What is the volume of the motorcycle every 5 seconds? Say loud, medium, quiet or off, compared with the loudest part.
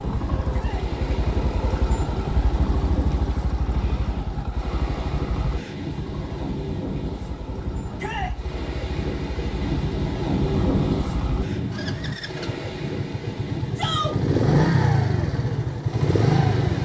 medium, quiet, loud, loud.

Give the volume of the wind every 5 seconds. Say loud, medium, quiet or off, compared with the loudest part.
medium, loud, loud, medium.